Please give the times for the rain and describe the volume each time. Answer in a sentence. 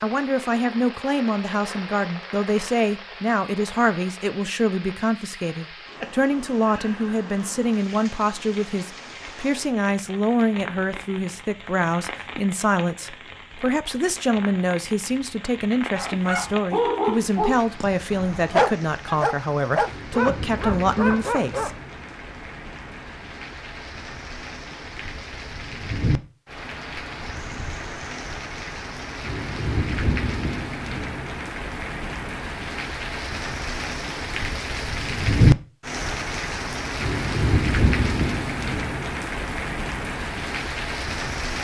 You can hear the rain from 0.0 to 41.5 s, getting louder.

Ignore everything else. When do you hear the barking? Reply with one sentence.
The barking can be heard from 15.9 to 21.8 s.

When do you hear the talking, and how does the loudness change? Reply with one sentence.
You can hear the talking from 0.0 to 21.8 s, at a steady volume.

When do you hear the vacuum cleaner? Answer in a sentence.
You can't hear the vacuum cleaner here.